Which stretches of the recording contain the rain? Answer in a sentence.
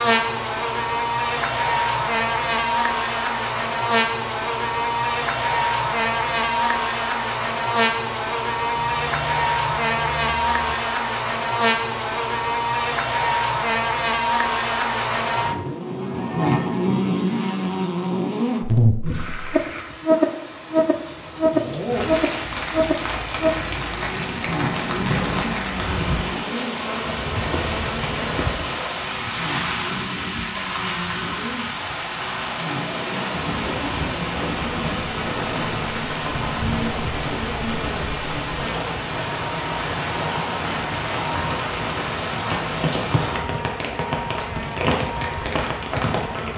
The rain can be heard from 19.0 to 46.5 s.